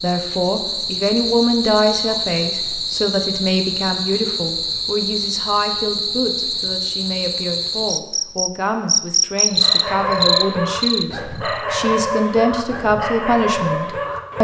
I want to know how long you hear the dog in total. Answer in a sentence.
You can hear the dog for 5 seconds altogether.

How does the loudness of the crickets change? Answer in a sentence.
The volume of the crickets goes up.